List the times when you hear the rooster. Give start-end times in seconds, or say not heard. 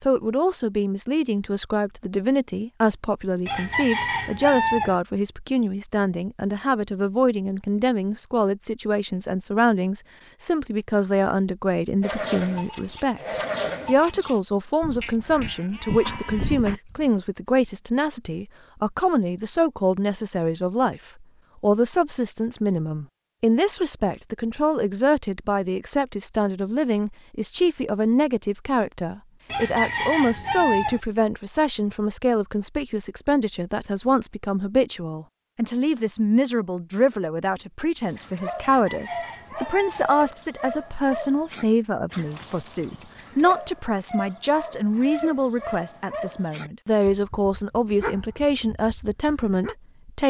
3.5-5.0, 29.4-31.0, 38.6-40.1.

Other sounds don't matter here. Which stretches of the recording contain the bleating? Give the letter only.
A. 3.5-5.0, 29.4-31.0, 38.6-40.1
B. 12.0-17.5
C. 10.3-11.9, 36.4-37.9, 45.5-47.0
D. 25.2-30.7
B.